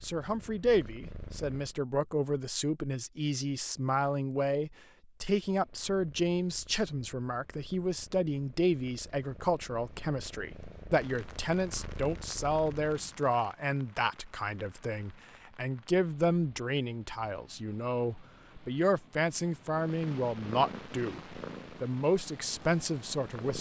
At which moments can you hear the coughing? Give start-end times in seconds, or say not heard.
not heard.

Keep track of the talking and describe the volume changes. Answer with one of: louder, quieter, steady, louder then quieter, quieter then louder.
steady.